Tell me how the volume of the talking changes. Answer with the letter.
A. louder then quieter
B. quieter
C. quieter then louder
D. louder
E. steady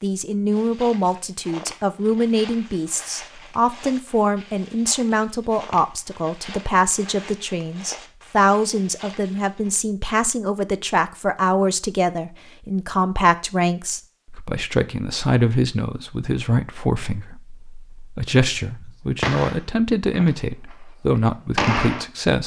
E.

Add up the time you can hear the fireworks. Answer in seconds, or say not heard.
4 s.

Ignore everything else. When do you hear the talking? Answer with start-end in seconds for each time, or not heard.
0.0-22.4.